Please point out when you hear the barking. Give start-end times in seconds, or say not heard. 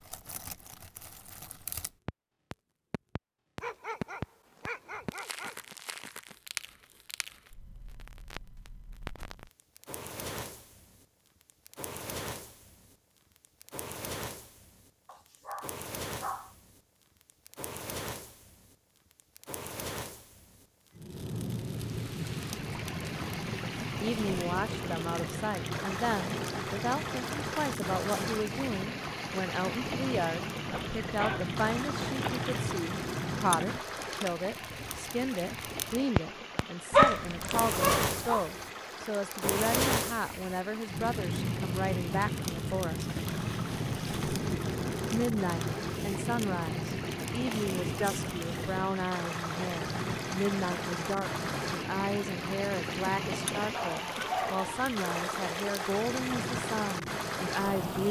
3.6-6.0, 15.1-16.6, 30.7-32.8, 36.9-38.4, 53.7-55.1.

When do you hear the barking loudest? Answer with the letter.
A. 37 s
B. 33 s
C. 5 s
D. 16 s
A.